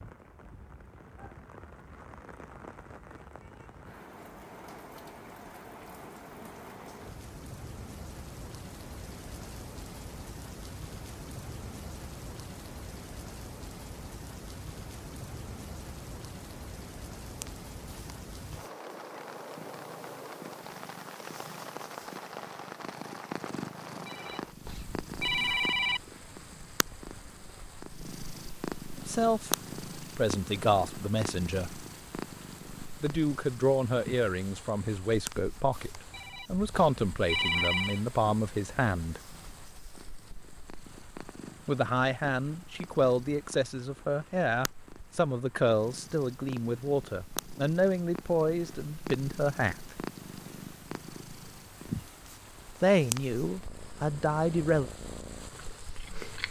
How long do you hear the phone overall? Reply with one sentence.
You can hear the phone for 4 seconds altogether.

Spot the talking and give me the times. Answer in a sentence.
You can hear the talking from 29.1 to 31.9 s, from 33.0 to 39.2 s, from 41.6 to 50.0 s and from 52.8 to 54.9 s.